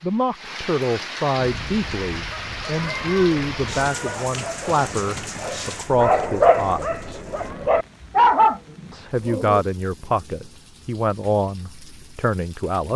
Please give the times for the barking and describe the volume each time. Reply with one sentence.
You can hear the barking from 1.4 to 9.6 s, getting louder.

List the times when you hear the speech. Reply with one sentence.
You can hear the speech from 0.0 to 7.2 s and from 8.9 to 12.9 s.